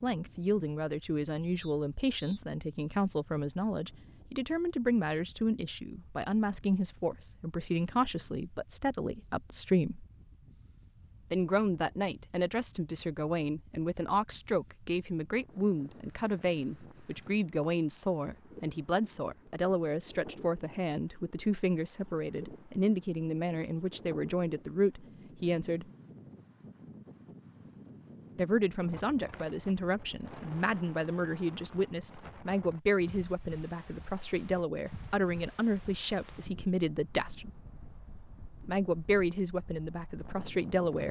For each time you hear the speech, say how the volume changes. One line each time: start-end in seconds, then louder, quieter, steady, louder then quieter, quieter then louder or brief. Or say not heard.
0.0-10.1 steady
11.3-25.9 steady
28.4-37.5 steady
38.6-41.0 brief.